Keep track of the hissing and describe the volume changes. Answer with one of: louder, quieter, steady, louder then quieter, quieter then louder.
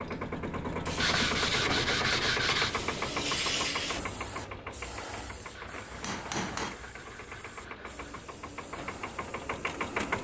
louder then quieter.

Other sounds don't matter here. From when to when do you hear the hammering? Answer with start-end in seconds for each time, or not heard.
5.3-6.8.